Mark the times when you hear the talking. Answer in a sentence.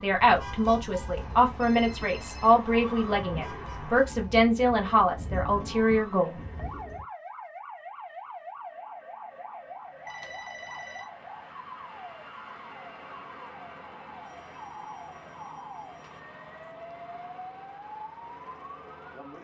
The talking can be heard from 0.0 to 6.4 s.